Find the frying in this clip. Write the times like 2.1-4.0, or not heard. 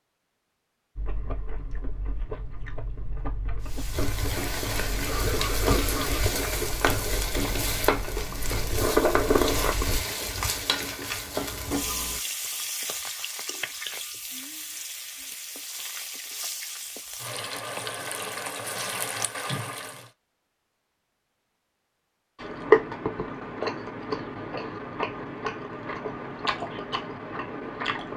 3.6-20.1.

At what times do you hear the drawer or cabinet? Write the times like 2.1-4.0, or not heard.
not heard.